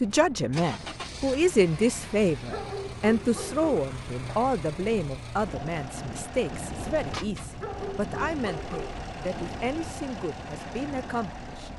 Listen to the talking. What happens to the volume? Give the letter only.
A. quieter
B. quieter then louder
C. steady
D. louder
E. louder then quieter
A.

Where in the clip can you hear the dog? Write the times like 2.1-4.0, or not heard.
2.5-3.9, 7.5-9.0.